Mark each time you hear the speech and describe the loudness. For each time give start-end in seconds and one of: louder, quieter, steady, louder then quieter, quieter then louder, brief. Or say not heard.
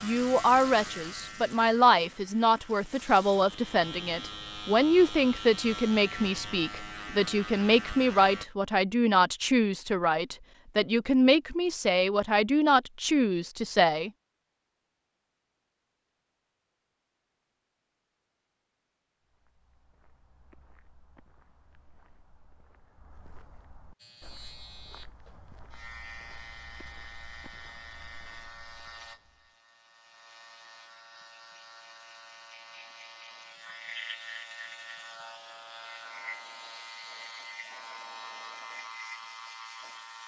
0.0-14.1 steady.